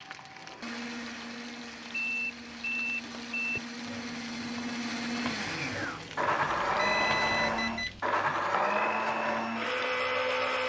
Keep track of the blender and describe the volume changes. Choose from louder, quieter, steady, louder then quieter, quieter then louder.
louder.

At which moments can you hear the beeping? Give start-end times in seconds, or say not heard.
1.9-3.6, 6.8-8.0.